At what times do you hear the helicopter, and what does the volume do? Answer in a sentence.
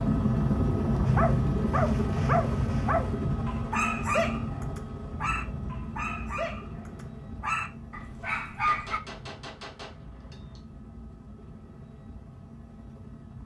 The helicopter can be heard from 0.0 to 13.4 s, getting quieter.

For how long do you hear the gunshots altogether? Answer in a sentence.
You can hear the gunshots for 2 seconds altogether.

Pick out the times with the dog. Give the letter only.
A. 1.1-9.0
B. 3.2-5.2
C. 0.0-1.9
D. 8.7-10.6
A.